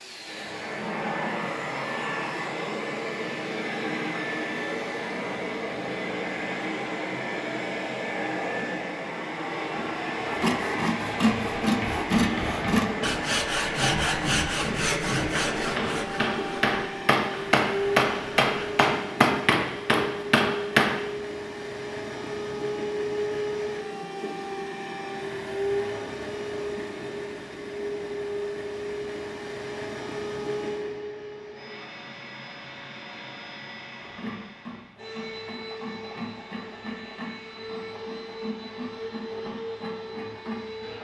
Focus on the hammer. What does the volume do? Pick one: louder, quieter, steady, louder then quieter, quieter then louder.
louder.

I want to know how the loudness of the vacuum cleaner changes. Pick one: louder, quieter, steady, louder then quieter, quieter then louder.
quieter.